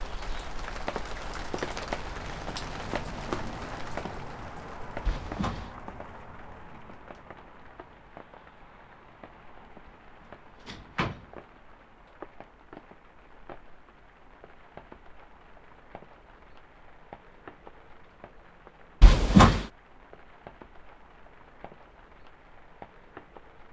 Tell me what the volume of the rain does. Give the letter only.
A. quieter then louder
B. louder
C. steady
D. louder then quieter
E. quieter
E.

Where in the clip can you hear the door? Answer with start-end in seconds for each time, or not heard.
5.0-5.7, 10.7-11.2, 19.0-19.6.